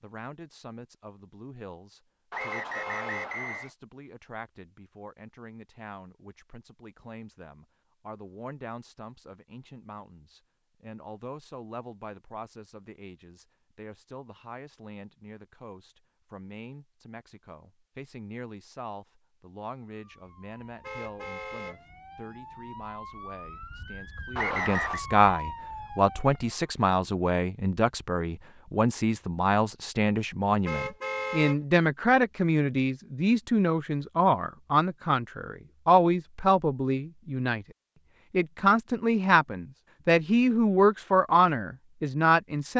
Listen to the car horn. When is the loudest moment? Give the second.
31 s.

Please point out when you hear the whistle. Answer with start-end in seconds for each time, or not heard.
2.3-3.7, 24.4-25.0.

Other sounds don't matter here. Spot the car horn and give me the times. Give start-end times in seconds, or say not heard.
2.4-3.3, 20.8-21.8, 30.6-31.6.